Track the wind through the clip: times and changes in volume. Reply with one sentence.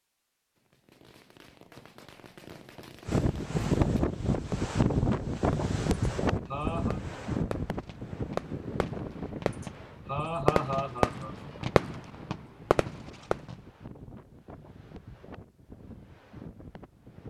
The wind can be heard from 3.0 to 17.2 s, getting quieter.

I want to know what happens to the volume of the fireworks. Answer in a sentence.
The volume of the fireworks goes up.